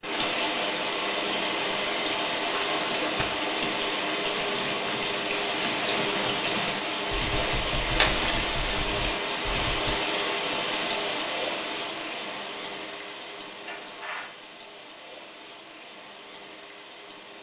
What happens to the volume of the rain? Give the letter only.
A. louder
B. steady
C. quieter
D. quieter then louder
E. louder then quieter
C.